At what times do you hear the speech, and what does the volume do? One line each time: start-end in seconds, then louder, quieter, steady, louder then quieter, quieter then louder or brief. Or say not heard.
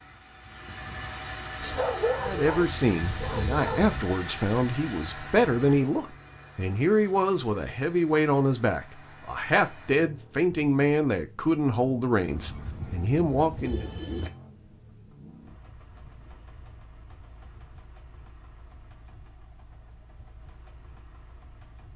2.2-13.8 steady.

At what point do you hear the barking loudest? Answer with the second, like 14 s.
2 s.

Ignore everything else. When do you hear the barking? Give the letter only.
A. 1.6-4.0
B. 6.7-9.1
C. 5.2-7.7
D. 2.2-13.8
A.